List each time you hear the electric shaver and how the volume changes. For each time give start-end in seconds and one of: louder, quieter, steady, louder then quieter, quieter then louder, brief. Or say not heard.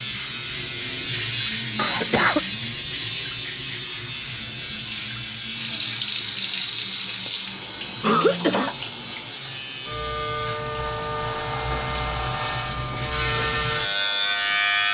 0.0-14.9 quieter then louder.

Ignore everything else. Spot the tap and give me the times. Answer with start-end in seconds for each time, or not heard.
0.0-14.9.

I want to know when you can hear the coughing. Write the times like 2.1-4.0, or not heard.
1.8-2.4, 8.0-8.8.